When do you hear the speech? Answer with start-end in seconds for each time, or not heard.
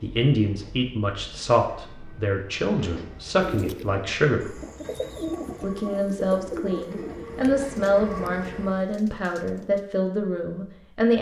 0.0-4.5, 5.6-11.1.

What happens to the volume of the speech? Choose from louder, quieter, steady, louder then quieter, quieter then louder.
steady.